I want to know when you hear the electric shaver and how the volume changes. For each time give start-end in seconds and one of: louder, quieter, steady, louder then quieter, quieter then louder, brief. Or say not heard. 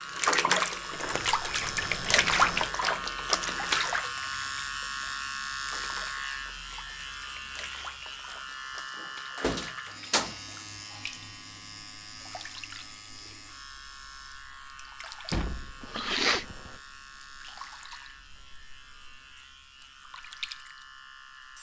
0.0-21.5 quieter.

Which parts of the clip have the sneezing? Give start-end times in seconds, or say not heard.
15.8-16.6.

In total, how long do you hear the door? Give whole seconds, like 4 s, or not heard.
5 s.